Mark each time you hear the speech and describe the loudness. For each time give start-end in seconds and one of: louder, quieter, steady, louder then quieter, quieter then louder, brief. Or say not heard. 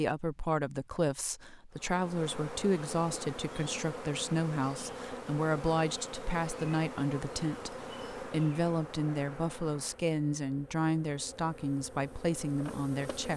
0.0-13.3 steady.